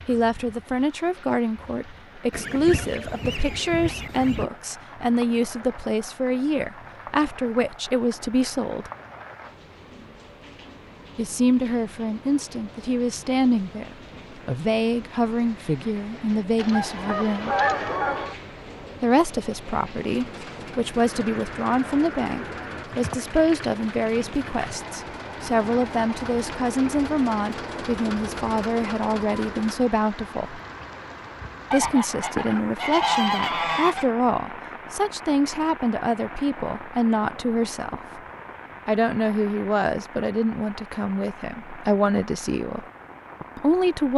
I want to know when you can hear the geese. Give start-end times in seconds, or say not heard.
2.3-4.5, 16.6-18.4, 31.7-34.1.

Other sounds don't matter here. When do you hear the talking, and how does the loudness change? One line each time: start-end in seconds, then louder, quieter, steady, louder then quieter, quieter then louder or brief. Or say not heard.
0.1-8.9 steady
11.2-17.6 steady
19.0-30.6 steady
31.7-38.2 steady
38.9-42.9 quieter then louder
43.5-44.1 brief.